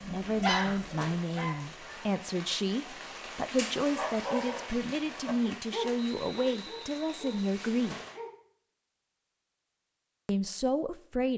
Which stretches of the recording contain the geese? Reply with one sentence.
The geese can be heard from 0.0 to 2.1 s.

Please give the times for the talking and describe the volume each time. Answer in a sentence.
You can hear the talking from 0.1 to 8.1 s, at a steady volume; and briefly from 10.2 to 11.3 s.